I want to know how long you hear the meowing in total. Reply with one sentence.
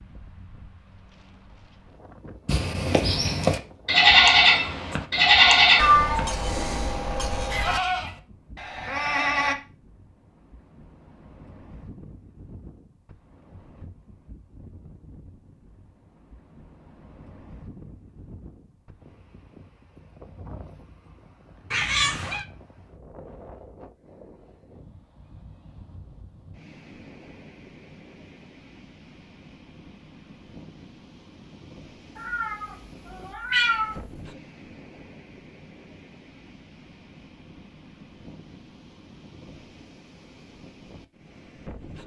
You can hear the meowing for 5 seconds altogether.